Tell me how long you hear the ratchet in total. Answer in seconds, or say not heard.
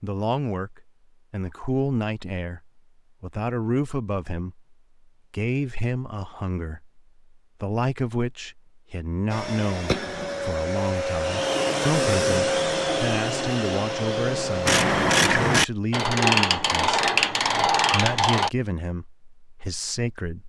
4 s.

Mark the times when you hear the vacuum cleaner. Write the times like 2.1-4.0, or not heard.
9.3-15.7.